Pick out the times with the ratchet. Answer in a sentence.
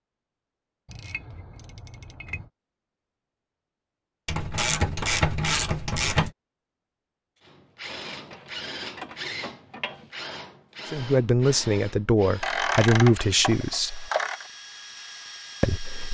You can hear the ratchet from 0.8 to 2.5 s, from 4.2 to 6.3 s, from 8.3 to 10.1 s and from 12.4 to 14.5 s.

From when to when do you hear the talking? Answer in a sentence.
The talking can be heard from 10.9 to 14.1 s and from 15.6 to 16.1 s.